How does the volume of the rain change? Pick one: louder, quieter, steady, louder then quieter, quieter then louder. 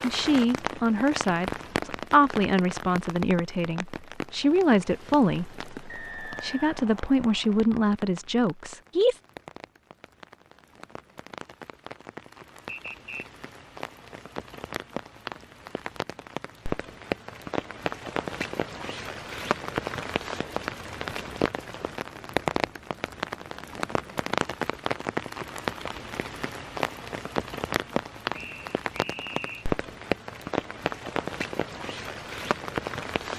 quieter then louder.